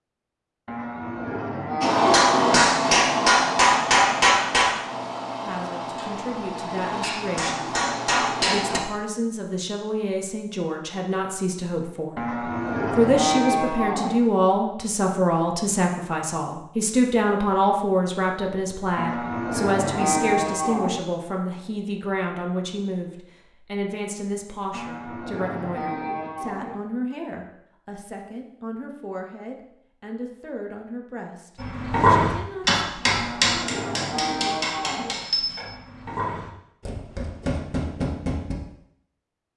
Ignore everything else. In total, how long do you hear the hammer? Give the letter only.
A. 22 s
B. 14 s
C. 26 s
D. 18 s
B.